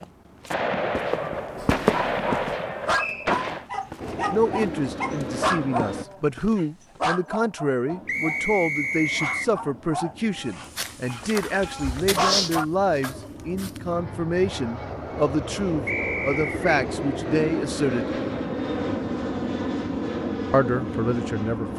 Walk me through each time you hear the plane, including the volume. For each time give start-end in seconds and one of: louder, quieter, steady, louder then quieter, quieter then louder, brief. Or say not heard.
4.0-6.0 brief
7.8-21.7 louder.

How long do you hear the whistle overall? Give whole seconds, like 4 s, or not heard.
3 s.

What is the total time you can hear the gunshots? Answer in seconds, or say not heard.
3 s.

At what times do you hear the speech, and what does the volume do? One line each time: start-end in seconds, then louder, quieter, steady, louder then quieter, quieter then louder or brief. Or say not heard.
4.3-18.1 steady
20.5-21.7 brief.